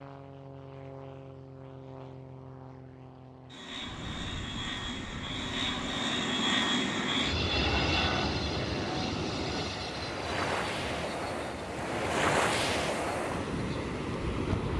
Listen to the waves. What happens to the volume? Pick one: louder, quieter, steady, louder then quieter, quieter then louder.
louder.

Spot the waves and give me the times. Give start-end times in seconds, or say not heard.
3.6-14.7.